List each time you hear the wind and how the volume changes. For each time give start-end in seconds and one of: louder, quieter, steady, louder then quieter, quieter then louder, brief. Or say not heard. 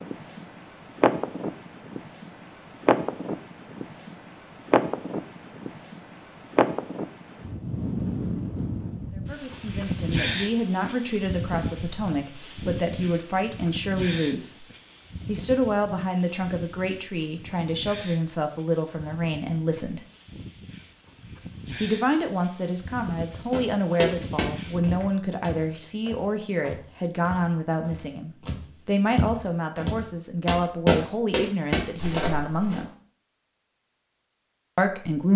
0.0-25.1 quieter.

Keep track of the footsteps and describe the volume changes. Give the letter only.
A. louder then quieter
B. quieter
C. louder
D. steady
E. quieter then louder
E.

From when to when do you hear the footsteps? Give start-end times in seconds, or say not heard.
23.5-32.9.